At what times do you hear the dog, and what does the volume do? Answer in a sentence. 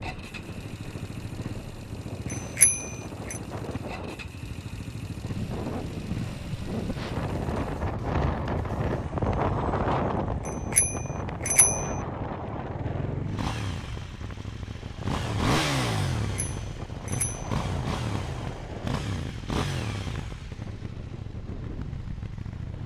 The dog can't be heard in this clip.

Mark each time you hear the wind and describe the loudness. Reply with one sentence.
You can hear the wind from 0.0 to 22.8 s, getting louder then quieter.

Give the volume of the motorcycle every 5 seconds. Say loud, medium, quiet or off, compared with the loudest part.
medium, medium, medium, loud, medium.